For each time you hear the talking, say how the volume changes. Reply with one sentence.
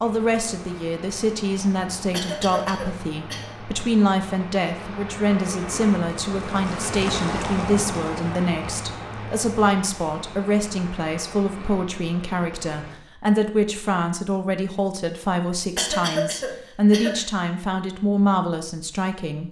The talking can be heard from 0.0 to 19.4 s, at a steady volume.